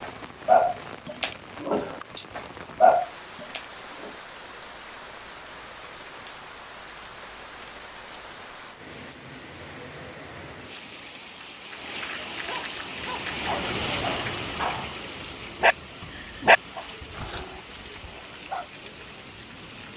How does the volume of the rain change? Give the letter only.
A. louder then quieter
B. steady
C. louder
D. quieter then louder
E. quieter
A.